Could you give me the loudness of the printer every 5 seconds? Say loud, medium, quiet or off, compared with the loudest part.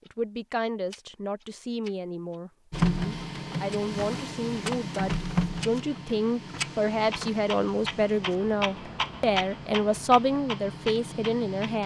loud, medium, medium.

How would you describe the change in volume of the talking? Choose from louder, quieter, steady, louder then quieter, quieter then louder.
louder.